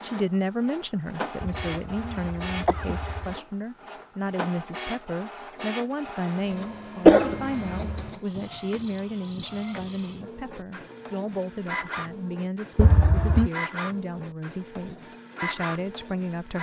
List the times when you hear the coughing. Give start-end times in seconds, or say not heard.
1.4-3.4, 7.0-8.1, 12.8-13.5.